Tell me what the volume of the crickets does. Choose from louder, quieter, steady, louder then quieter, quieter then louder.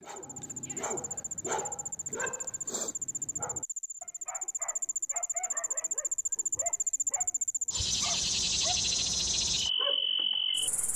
louder.